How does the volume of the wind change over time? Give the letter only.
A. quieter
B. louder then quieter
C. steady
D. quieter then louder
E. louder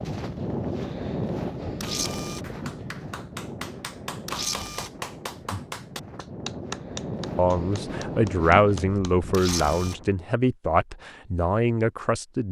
D.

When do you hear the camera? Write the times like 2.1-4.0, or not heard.
1.8-2.5, 4.2-4.9, 9.3-9.9.